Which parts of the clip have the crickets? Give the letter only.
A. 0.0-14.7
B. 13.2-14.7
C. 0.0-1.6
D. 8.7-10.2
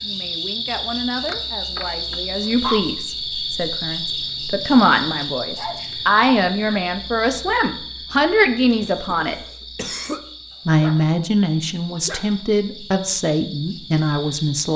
A.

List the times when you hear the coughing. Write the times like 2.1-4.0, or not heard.
8.7-10.2.